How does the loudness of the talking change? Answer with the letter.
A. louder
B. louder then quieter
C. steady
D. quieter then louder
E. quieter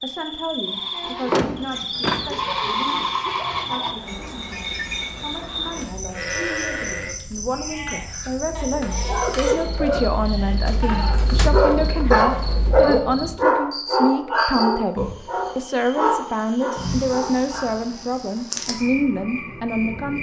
A.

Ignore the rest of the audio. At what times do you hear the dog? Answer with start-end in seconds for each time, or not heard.
8.3-17.9.